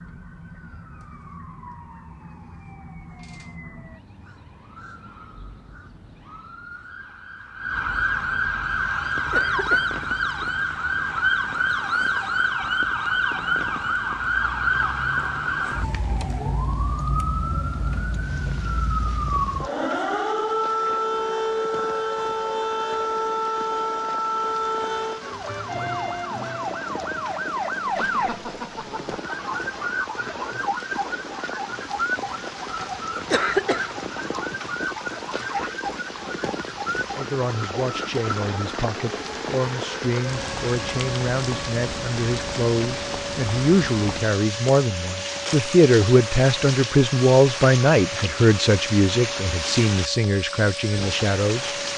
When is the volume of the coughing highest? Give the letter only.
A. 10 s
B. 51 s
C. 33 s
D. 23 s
C.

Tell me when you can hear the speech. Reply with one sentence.
The speech can be heard from 37.1 to 51.8 s.